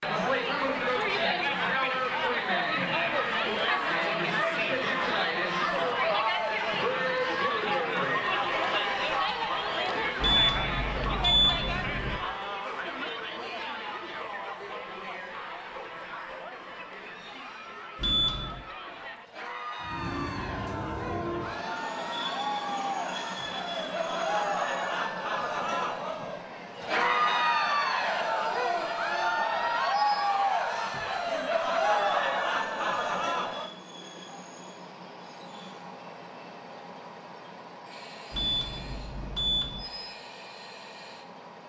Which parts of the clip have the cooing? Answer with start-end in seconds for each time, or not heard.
not heard.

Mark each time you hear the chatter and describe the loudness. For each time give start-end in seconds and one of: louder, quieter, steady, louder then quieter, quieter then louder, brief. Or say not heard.
0.0-33.7 quieter then louder.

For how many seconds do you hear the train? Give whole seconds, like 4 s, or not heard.
22 s.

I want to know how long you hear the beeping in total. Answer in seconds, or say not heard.
4 s.